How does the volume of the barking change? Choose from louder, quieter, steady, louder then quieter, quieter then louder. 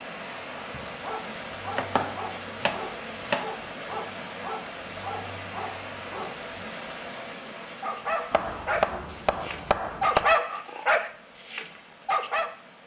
louder.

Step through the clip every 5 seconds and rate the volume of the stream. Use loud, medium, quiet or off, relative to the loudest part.
loud, loud, quiet.